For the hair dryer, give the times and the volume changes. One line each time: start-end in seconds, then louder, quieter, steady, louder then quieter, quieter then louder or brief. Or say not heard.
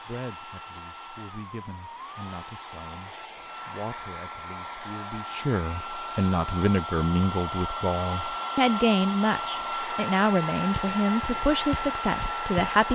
0.0-12.9 louder.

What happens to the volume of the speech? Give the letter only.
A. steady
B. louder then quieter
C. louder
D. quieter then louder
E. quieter
C.